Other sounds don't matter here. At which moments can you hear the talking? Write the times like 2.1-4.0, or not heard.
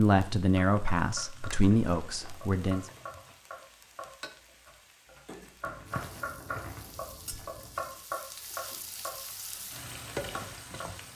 0.0-2.9.